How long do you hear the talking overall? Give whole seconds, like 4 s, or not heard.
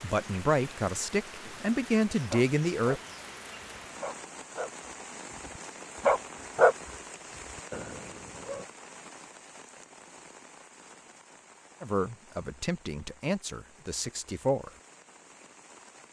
6 s.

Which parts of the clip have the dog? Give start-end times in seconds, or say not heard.
2.3-3.0, 3.8-6.8, 7.3-8.7.